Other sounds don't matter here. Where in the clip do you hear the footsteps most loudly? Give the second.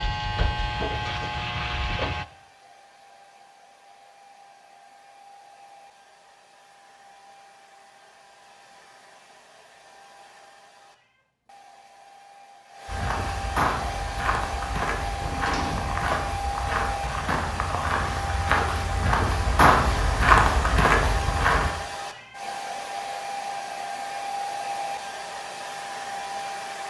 20 s.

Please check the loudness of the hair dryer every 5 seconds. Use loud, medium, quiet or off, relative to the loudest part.
quiet, quiet, medium, loud, loud, loud.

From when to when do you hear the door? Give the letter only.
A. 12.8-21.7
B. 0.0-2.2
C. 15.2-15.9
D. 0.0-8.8
C.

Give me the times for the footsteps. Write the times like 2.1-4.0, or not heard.
12.8-21.7.